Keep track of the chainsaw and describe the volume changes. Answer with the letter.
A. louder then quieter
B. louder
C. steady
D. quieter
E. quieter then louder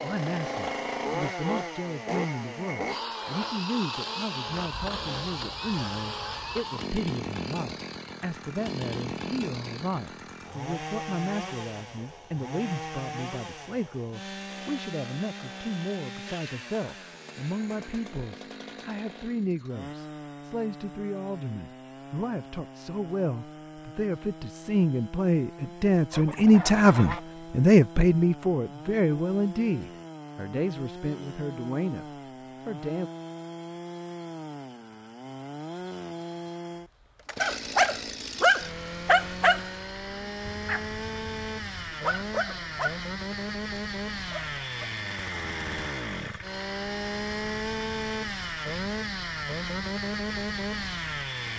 E.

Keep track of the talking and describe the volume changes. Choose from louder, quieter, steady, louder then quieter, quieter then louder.
louder.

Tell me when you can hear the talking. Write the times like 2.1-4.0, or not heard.
0.0-33.1.